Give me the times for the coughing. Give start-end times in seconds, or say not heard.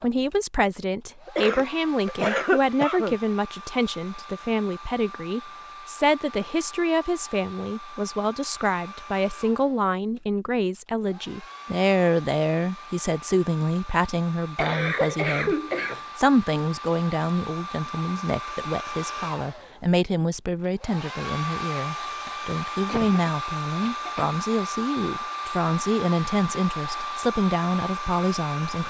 1.2-3.1, 14.6-16.0, 22.2-24.3.